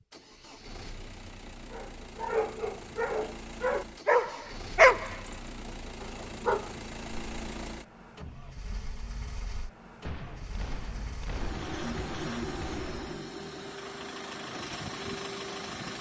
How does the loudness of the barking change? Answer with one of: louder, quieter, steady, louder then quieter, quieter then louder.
louder then quieter.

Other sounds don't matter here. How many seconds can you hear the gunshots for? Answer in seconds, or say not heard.
3 s.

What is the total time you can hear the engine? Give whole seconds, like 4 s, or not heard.
16 s.